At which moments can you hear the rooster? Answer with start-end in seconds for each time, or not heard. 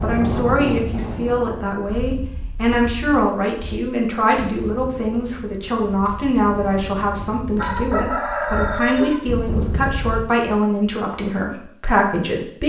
7.5-9.2.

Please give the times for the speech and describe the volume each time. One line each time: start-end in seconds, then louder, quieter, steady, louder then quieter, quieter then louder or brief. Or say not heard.
0.0-12.6 steady.